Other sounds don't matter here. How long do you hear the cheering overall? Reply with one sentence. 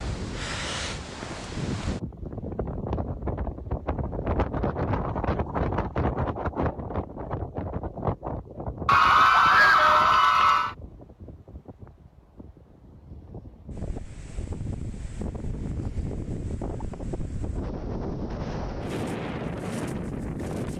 You can hear the cheering for 2 seconds altogether.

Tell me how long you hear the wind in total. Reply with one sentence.
You can hear the wind for 21 seconds altogether.